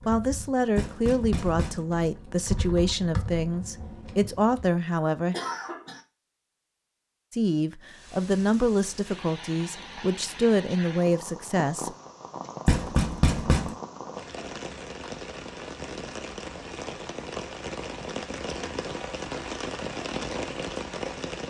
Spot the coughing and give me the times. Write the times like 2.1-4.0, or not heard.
5.3-6.0.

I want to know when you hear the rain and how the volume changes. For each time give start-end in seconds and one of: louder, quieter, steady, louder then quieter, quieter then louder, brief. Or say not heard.
7.8-21.4 louder.